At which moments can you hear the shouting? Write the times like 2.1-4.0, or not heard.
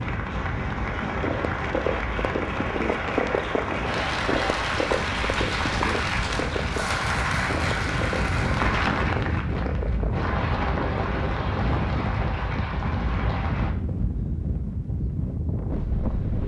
not heard.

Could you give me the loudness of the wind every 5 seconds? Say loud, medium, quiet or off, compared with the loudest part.
medium, loud, loud, loud.